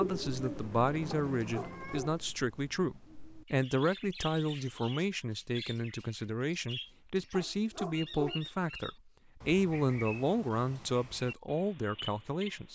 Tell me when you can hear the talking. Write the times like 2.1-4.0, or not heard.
0.0-12.7.